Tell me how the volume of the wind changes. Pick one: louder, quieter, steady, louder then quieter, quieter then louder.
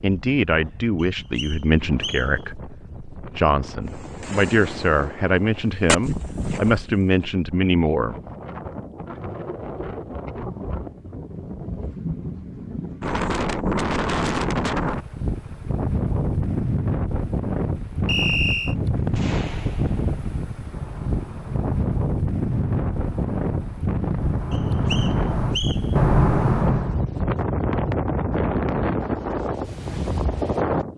louder.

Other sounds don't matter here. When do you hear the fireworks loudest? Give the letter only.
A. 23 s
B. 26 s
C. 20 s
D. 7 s
B.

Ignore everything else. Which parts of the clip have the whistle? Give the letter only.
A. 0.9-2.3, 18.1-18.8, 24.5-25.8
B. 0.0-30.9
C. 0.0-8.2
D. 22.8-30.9
A.